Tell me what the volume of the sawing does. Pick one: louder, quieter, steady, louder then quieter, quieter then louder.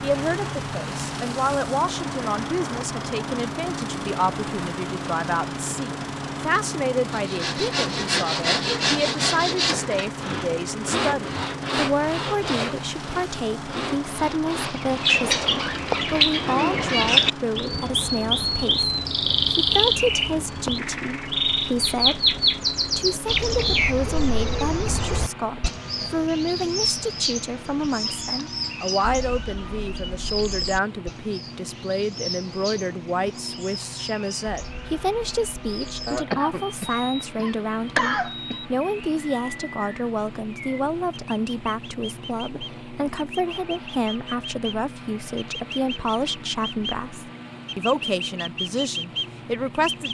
quieter.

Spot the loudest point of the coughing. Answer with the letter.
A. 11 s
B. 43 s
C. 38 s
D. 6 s
C.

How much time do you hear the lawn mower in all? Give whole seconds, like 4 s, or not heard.
50 s.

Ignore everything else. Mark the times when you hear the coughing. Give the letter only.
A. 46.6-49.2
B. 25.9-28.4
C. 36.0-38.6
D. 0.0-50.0
C.